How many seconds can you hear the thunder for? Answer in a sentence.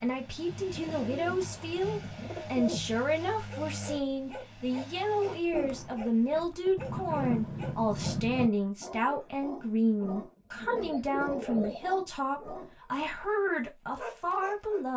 You can hear the thunder for 2 seconds altogether.